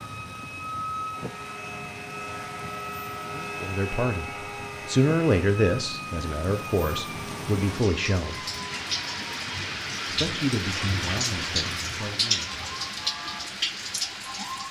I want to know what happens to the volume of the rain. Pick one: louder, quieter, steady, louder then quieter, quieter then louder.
louder.